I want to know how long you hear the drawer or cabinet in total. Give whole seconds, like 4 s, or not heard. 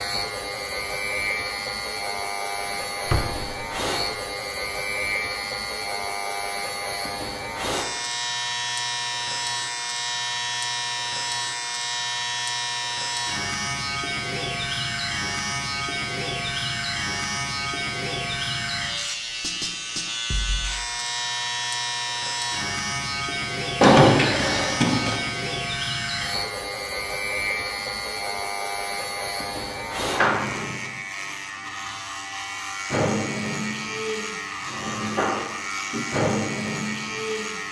2 s.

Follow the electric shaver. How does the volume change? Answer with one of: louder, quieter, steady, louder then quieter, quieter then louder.
steady.